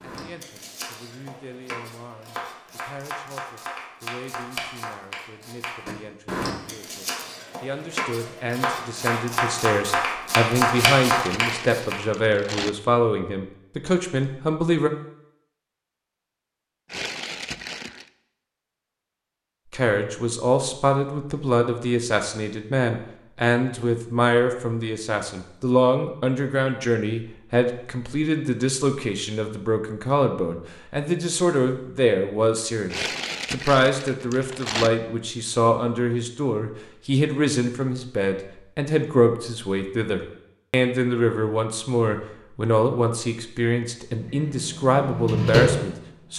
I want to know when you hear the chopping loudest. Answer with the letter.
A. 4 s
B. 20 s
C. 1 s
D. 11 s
D.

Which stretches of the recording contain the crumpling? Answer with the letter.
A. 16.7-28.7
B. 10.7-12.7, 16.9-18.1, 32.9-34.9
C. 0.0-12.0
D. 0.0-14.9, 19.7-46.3
B.